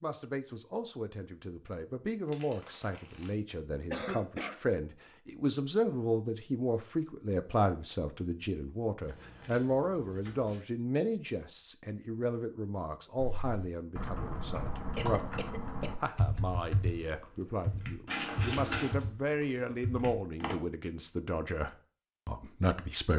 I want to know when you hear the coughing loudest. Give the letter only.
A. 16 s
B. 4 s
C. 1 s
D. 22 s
B.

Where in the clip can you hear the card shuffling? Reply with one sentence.
You can hear the card shuffling from 2.2 to 3.3 s, from 9.0 to 10.6 s and from 18.1 to 19.1 s.